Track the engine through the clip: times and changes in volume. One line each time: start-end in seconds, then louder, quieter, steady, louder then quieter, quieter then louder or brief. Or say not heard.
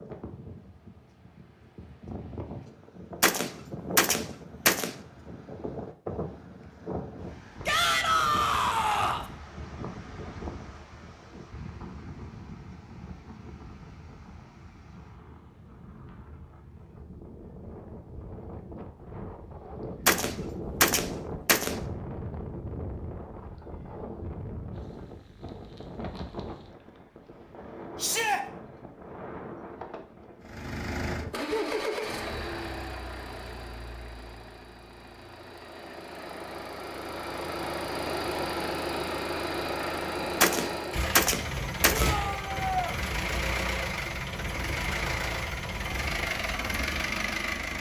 30.4-47.7 quieter then louder.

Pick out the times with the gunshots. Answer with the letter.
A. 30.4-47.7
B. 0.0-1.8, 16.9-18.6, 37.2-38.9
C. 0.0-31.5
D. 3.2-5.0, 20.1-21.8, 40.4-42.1
D.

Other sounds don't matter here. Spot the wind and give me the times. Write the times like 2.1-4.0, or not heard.
0.0-31.5.